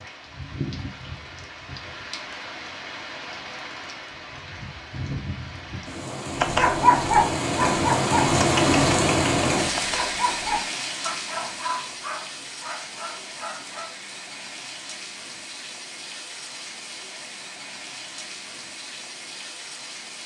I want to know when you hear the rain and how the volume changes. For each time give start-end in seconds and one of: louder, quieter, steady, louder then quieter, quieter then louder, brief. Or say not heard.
0.0-20.2 louder then quieter.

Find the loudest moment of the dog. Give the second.
7 s.